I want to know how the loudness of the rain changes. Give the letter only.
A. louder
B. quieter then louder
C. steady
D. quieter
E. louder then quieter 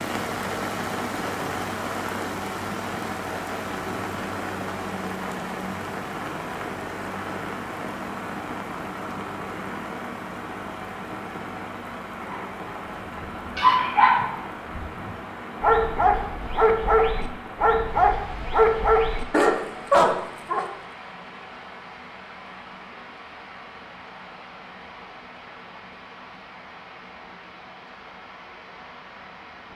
D.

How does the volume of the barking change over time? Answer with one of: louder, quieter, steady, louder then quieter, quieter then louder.
steady.